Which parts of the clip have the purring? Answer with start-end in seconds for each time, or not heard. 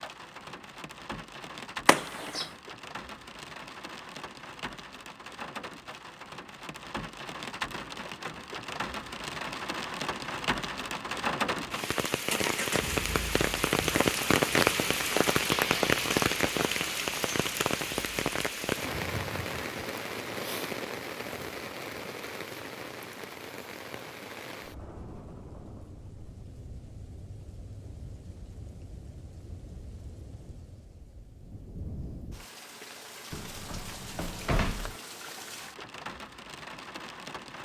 not heard.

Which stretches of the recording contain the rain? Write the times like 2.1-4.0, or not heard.
0.0-37.5.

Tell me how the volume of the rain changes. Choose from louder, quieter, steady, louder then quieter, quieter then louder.
louder then quieter.